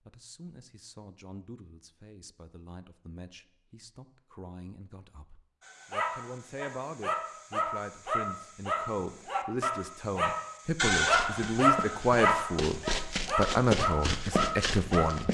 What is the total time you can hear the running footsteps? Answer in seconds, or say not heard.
4 s.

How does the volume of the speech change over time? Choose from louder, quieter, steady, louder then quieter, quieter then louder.
louder.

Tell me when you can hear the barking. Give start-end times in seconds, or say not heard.
5.7-15.2.